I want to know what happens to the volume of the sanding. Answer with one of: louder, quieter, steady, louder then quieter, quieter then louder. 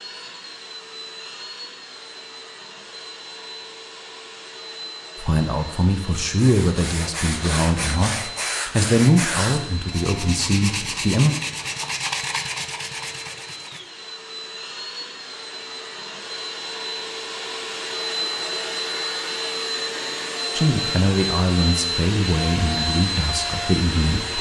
steady.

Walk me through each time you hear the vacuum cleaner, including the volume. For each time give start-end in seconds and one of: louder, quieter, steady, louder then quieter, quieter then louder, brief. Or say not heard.
0.0-24.3 louder.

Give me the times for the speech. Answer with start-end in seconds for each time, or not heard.
5.2-11.3, 20.6-24.3.